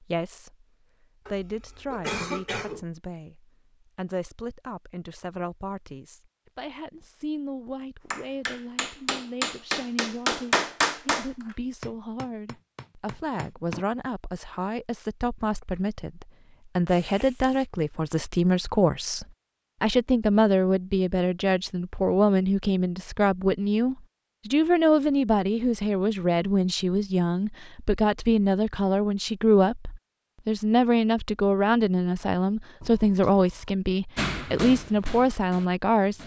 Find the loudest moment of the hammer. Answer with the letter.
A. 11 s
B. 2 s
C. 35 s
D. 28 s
A.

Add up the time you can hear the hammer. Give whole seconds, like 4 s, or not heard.
8 s.